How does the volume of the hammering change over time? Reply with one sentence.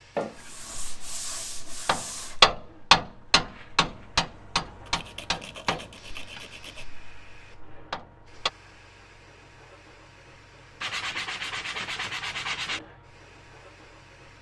The loudness of the hammering goes up, then down.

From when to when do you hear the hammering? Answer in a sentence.
The hammering can be heard from 0.3 to 8.5 s.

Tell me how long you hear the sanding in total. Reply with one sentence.
You can hear the sanding for 6 seconds altogether.